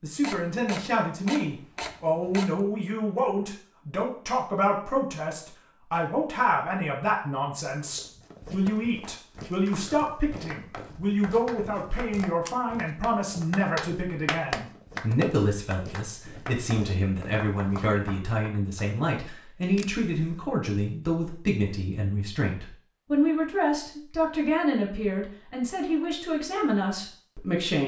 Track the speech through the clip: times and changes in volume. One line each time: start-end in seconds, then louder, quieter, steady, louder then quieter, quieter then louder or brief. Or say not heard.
0.0-27.8 steady.